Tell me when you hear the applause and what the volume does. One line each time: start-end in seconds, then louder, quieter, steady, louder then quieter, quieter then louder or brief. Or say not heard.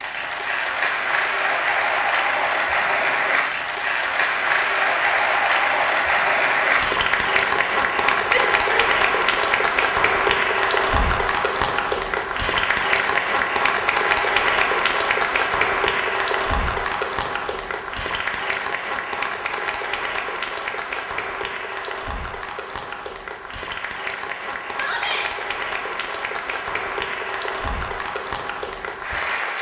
0.0-29.5 quieter.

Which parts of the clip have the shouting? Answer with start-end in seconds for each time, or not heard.
8.3-8.8, 24.7-25.3.